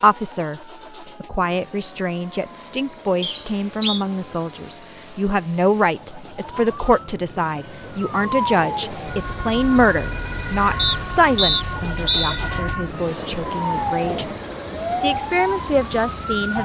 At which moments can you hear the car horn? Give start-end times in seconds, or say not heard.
not heard.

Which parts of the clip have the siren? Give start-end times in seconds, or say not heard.
0.1-16.6.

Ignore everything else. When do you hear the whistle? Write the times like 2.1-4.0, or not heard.
3.2-4.0, 10.8-12.4.